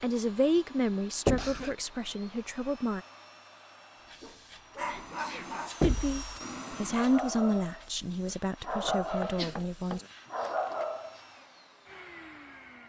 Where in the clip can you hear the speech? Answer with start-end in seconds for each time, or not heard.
0.0-3.0, 5.8-10.1.